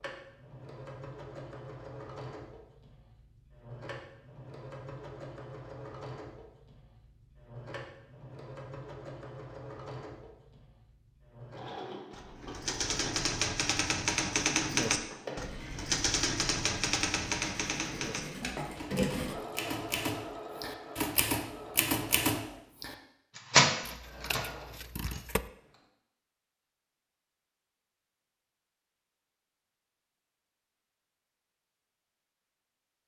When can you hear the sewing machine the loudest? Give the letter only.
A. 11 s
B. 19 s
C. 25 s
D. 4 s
B.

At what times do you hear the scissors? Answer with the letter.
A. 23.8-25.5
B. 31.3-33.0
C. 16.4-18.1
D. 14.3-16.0
A.